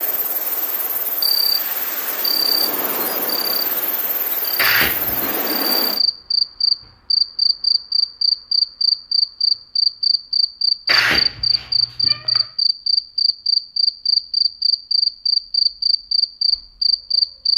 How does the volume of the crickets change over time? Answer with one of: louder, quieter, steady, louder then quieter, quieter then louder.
louder.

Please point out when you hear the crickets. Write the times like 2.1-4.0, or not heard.
0.0-17.5.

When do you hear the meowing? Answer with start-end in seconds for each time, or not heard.
4.5-5.3, 10.8-12.4.